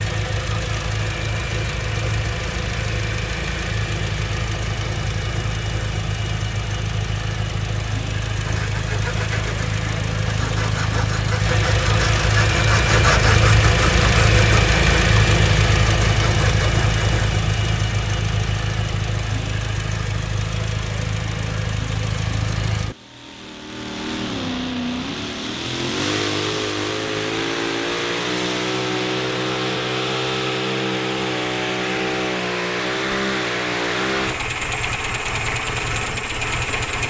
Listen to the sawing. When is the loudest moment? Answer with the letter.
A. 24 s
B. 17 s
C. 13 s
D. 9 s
C.